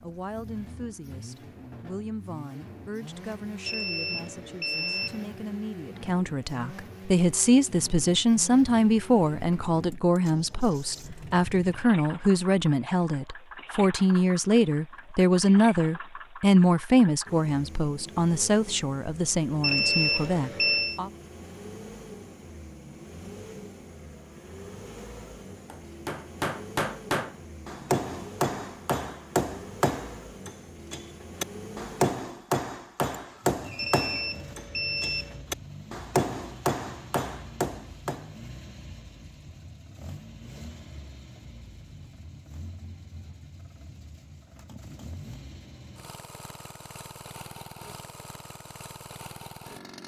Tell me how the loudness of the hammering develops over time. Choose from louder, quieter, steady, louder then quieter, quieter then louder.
steady.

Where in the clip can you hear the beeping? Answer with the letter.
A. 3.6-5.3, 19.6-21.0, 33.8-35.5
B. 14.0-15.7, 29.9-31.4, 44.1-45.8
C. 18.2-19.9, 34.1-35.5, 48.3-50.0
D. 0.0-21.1
A.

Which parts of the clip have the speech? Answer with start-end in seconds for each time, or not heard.
0.0-21.1.